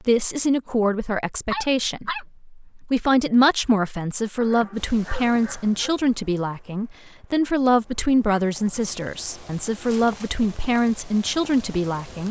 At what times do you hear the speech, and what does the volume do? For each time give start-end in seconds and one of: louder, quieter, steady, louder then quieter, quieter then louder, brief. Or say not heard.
0.1-12.2 steady.